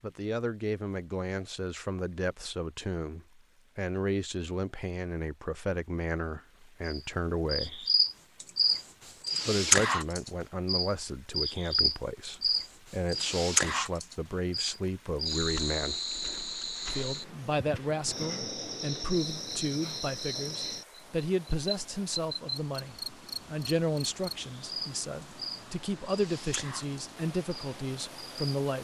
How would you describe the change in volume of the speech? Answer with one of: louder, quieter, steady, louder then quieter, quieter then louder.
steady.